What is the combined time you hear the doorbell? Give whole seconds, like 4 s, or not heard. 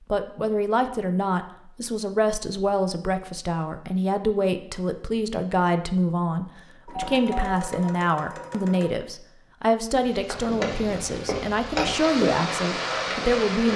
2 s.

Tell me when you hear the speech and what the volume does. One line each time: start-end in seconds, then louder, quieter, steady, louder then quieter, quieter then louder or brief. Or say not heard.
0.1-13.7 steady.